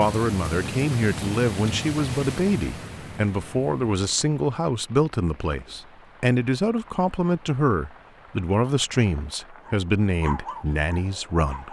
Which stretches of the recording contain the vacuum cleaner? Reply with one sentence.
You can't hear the vacuum cleaner here.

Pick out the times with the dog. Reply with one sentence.
You can hear the dog from 9.6 to 11.6 s.